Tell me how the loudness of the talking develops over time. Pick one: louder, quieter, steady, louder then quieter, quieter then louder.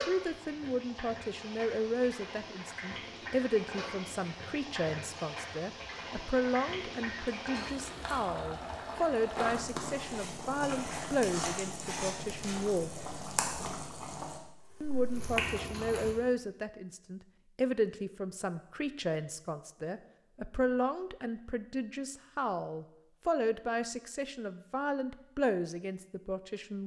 steady.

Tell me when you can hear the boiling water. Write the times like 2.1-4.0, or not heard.
0.0-16.1.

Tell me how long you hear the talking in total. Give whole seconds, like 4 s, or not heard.
25 s.